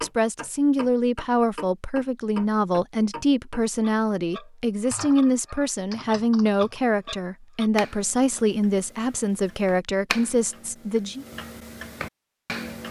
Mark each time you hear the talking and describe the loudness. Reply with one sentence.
The talking can be heard from 0.0 to 11.2 s, at a steady volume.